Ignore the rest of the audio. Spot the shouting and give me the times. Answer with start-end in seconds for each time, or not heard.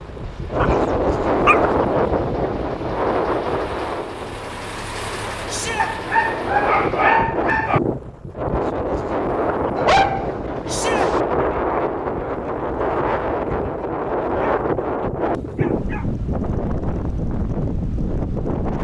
5.5-5.9, 10.7-11.1.